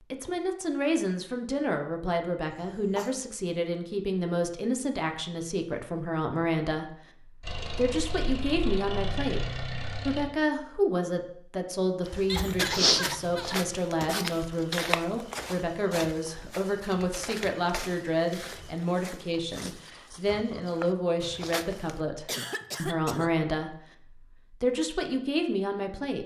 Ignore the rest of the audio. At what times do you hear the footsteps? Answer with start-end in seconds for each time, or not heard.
12.1-21.9.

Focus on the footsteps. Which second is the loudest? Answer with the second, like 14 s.
13 s.